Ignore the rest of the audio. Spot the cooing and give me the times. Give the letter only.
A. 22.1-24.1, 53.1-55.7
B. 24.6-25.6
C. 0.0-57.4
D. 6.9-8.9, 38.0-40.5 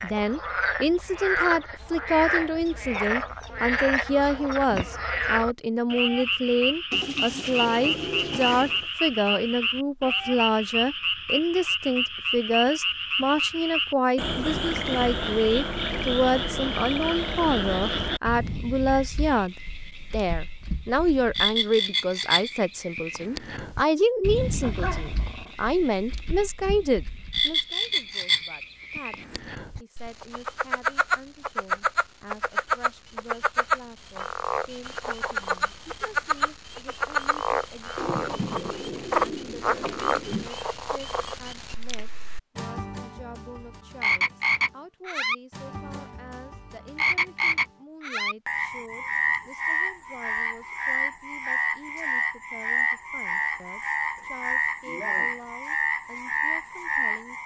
D.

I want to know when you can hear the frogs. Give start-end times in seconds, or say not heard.
0.0-57.4.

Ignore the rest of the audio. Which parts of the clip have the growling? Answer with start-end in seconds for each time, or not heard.
24.6-25.6.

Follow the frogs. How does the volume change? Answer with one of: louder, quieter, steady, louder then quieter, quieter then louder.
steady.